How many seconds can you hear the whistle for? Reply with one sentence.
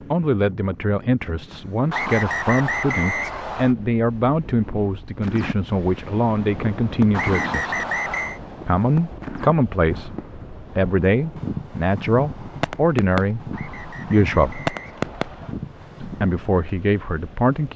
The whistle can be heard for 5 seconds in total.